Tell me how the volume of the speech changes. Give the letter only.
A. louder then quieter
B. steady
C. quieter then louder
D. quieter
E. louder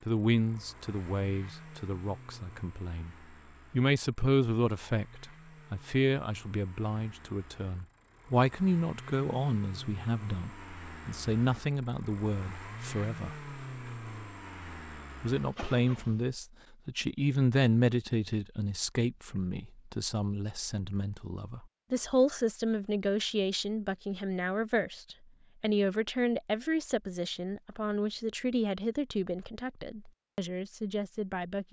B.